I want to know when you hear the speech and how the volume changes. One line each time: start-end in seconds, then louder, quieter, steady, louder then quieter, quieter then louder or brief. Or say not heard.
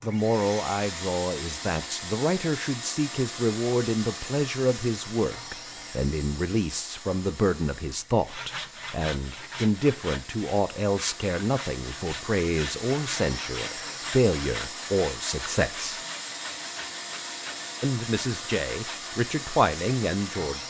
0.0-16.0 steady
17.8-20.6 brief.